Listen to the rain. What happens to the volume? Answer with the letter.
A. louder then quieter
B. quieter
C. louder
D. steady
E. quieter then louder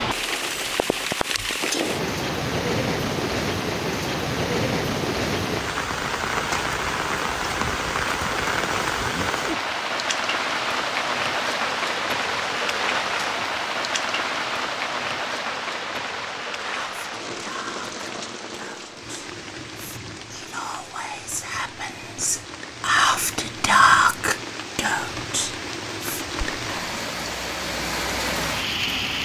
E.